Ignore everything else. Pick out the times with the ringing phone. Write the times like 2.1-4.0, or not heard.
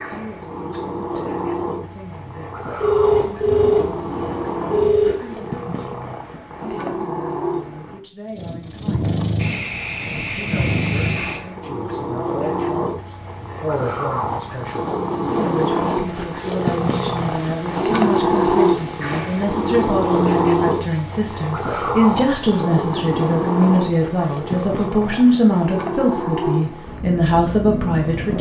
2.8-5.2.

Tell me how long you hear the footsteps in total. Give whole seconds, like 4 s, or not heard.
not heard.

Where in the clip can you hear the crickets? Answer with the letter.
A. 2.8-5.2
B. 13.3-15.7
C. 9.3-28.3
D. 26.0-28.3
C.